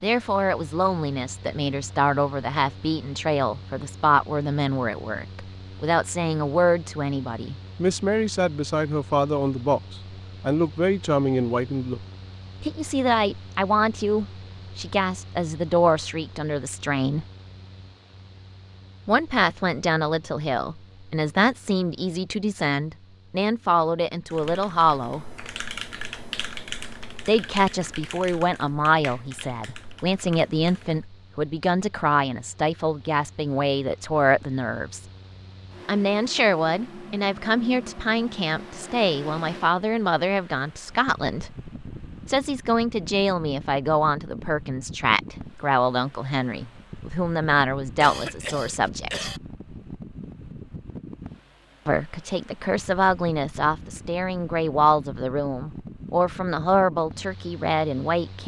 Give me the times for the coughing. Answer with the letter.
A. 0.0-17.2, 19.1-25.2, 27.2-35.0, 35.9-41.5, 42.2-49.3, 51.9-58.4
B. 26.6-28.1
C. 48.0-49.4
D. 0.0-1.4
C.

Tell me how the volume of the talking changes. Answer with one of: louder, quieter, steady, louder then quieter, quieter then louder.
steady.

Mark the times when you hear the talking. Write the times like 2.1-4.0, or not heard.
0.0-17.2, 19.1-25.2, 27.2-35.0, 35.9-41.5, 42.2-49.3, 51.9-58.4.